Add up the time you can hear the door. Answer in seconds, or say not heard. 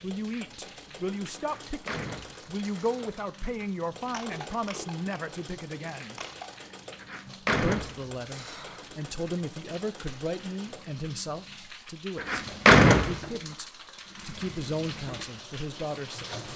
5 s.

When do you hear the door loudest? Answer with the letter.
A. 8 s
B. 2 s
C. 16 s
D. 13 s
D.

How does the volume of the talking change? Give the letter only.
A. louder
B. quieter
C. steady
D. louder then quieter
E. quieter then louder
C.